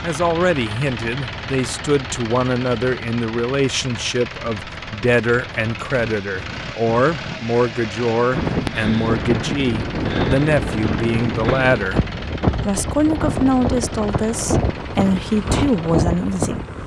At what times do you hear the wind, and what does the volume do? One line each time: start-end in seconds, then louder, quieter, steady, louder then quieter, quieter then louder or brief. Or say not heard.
8.3-16.8 steady.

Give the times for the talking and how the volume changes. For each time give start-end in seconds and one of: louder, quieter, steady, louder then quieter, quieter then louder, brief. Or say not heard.
0.0-16.6 steady.